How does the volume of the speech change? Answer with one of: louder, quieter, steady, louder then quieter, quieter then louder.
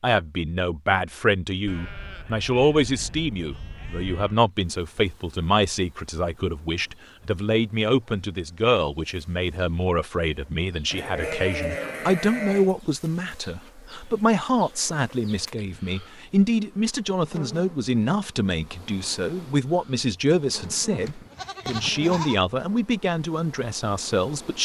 steady.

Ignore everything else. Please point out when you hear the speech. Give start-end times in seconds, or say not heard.
0.0-24.6.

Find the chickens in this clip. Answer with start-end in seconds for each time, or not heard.
not heard.